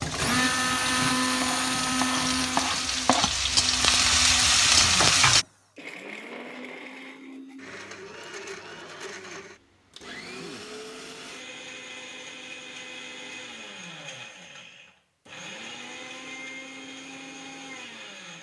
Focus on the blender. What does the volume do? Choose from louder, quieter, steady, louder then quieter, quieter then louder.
quieter.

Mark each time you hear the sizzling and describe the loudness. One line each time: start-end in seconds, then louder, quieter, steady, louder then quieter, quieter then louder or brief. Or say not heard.
0.0-5.5 louder.